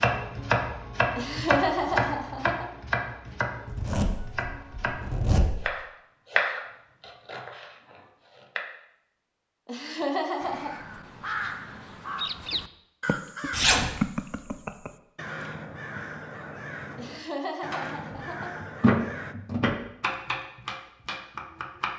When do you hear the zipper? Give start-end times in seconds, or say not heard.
3.6-5.7, 13.5-13.9.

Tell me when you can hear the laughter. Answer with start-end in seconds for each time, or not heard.
1.1-2.6, 9.7-10.8, 16.9-18.6.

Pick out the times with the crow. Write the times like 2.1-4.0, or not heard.
10.4-19.4.